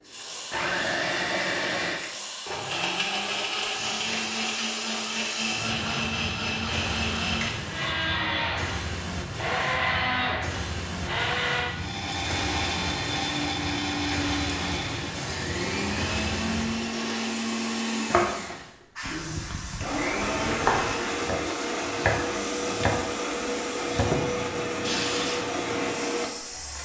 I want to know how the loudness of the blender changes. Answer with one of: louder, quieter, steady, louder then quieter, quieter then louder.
steady.